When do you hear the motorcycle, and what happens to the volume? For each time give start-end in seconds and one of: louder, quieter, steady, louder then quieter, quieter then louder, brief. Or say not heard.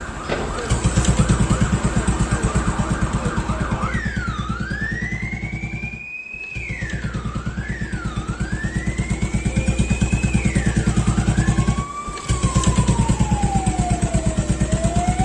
0.0-15.2 quieter then louder.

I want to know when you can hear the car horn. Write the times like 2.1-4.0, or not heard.
not heard.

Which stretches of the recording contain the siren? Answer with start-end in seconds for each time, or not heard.
0.0-15.2.